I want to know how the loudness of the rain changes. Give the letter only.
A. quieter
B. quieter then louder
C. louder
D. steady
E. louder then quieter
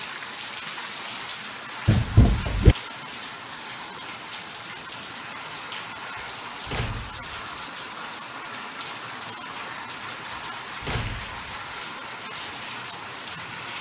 D.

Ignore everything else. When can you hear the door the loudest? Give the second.
2 s.